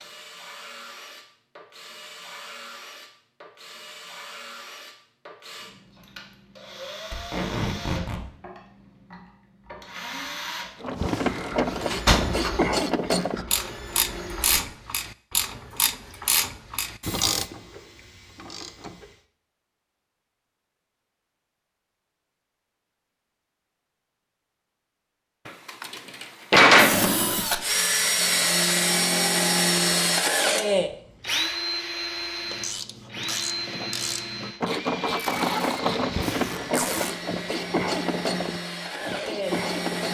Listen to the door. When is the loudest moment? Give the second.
27 s.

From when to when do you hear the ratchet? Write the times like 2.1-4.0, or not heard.
10.8-19.2, 32.4-40.1.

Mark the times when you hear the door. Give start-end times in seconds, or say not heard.
11.2-12.6, 25.4-27.1.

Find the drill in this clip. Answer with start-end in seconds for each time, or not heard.
0.0-14.6, 26.8-40.1.